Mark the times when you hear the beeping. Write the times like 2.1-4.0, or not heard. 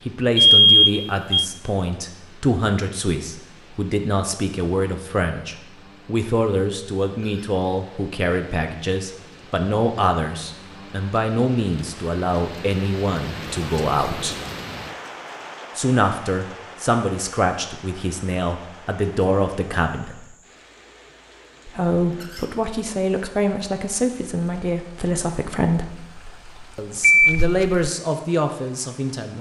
0.3-1.4, 26.1-27.9.